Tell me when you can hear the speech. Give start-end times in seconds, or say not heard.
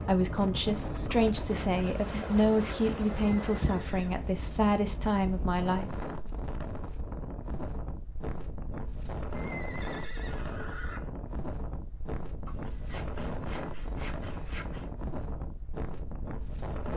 0.0-5.9.